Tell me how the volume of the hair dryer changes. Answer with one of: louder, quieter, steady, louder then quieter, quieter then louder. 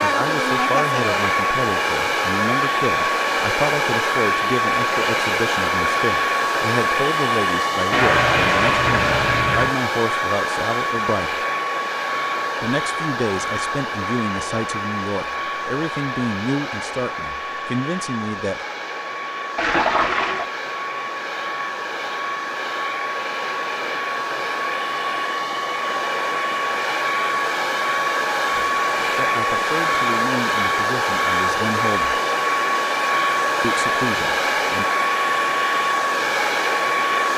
quieter then louder.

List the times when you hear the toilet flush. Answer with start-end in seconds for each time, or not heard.
7.9-9.8, 19.6-20.5.